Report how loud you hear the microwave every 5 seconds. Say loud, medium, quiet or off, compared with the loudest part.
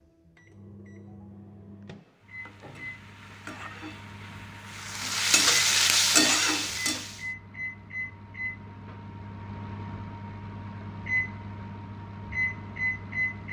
quiet, medium, loud.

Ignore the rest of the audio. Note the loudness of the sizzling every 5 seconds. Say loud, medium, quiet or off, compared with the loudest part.
quiet, loud, off.